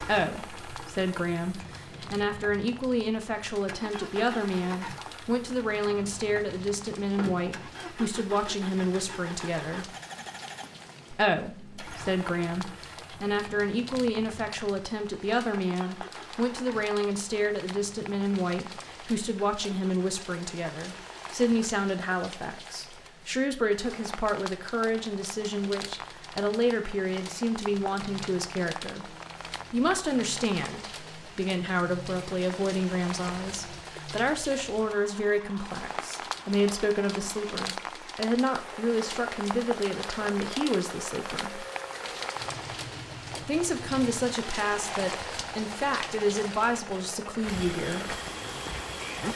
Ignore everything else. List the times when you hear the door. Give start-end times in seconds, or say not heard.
7.2-7.9.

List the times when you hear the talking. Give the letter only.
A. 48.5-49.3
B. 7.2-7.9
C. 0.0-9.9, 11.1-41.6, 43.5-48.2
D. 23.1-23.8
C.